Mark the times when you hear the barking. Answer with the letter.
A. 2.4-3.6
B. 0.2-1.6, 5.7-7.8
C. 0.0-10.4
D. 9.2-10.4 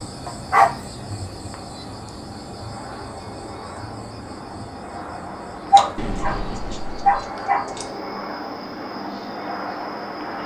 B.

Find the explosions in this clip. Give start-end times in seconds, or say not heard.
6.0-7.2.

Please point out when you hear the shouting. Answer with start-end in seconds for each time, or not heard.
not heard.